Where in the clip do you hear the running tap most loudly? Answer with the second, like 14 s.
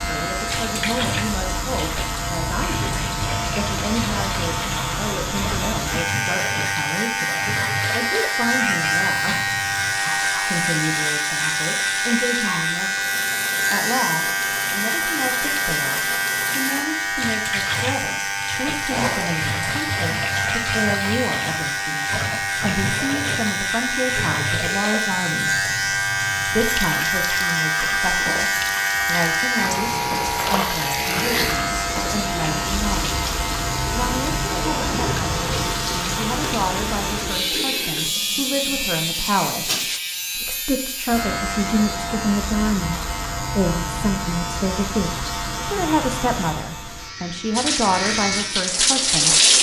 49 s.